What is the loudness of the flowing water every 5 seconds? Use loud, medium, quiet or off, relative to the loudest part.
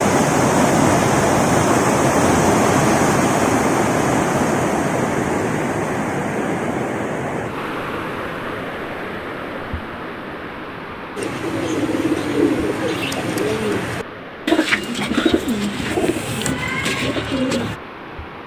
loud, medium, quiet, quiet.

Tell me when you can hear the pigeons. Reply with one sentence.
You can hear the pigeons from 11.2 to 17.8 s.